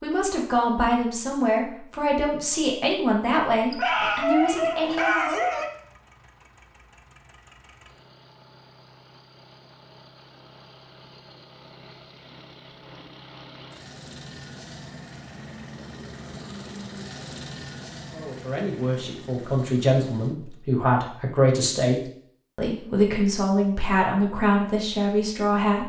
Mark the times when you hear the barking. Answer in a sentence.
You can hear the barking from 3.7 to 5.7 s.